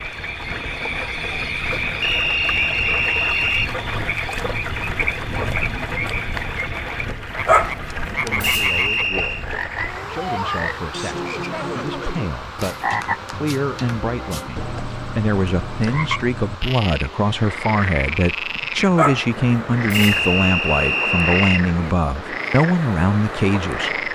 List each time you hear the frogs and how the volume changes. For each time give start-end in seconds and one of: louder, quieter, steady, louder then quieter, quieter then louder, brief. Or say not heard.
0.0-24.1 steady.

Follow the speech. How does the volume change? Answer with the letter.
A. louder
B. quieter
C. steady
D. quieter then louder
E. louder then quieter
A.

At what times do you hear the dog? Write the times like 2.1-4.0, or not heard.
7.4-8.9, 18.9-20.3.